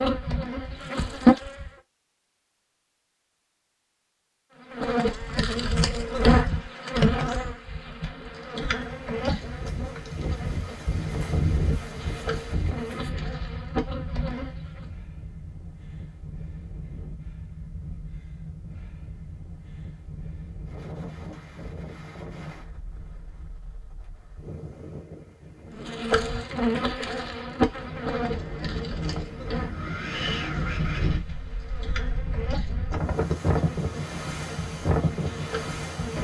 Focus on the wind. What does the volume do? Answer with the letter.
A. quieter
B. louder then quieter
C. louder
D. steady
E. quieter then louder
E.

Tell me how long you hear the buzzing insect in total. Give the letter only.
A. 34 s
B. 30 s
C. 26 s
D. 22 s
D.